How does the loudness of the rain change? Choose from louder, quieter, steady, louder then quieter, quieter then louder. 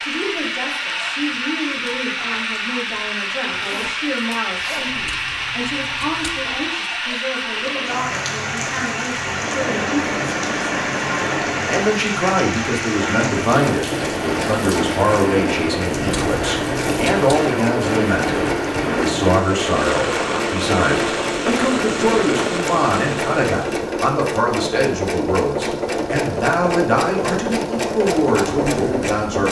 steady.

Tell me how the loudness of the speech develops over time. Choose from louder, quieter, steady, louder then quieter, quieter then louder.
louder.